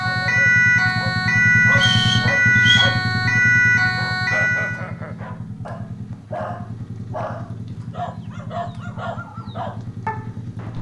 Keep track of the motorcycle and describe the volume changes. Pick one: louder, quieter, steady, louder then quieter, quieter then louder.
quieter.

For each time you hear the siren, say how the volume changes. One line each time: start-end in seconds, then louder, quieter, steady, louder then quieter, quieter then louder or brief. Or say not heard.
0.0-4.8 steady.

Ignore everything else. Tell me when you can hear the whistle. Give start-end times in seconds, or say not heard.
1.7-2.9.